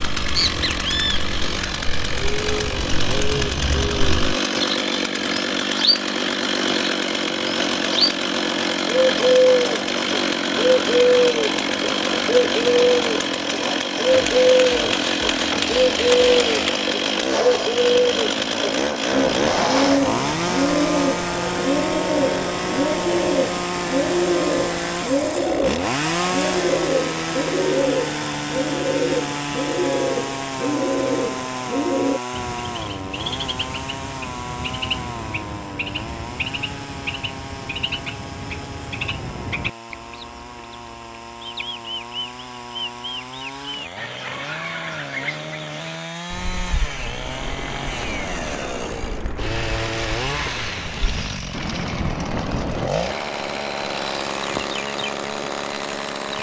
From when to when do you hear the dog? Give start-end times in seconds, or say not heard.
not heard.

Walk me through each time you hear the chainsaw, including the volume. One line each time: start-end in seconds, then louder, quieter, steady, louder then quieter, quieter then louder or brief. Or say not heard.
0.0-56.3 quieter then louder.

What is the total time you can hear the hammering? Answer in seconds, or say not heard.
3 s.